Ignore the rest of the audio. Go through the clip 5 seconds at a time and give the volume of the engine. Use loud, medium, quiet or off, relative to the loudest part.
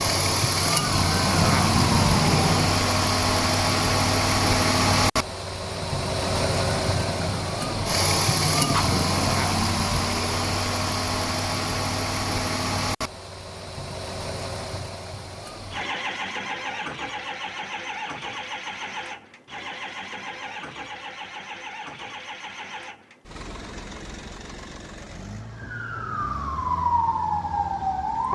loud, loud, medium, medium, quiet, quiet.